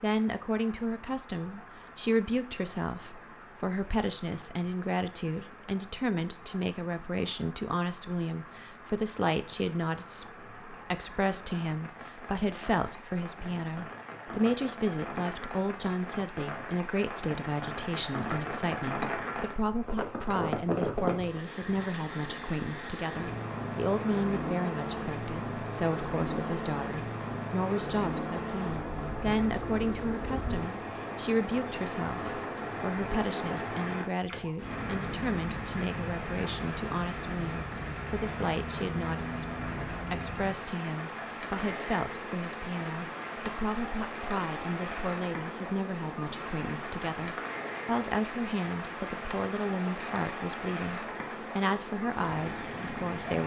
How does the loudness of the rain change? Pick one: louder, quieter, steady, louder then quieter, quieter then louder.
louder.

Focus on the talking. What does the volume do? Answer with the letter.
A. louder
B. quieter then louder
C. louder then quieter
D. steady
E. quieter
D.